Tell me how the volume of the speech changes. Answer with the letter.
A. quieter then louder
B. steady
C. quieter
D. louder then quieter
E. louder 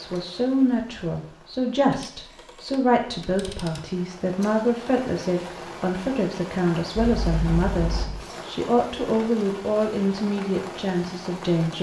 B.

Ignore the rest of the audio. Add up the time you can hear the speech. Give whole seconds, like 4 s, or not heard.
12 s.